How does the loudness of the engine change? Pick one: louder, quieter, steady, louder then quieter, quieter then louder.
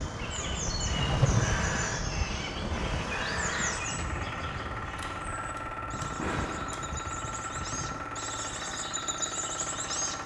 steady.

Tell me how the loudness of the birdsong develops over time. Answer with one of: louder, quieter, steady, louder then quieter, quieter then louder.
quieter then louder.